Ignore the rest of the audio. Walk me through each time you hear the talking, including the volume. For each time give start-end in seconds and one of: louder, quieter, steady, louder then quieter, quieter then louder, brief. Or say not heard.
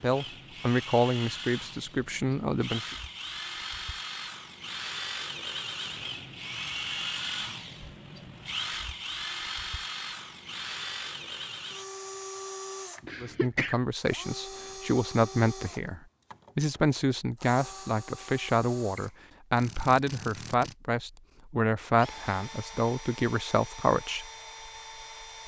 0.0-3.0 brief
13.2-24.2 steady.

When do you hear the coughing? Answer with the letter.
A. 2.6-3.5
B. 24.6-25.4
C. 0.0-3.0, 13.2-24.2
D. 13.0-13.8
D.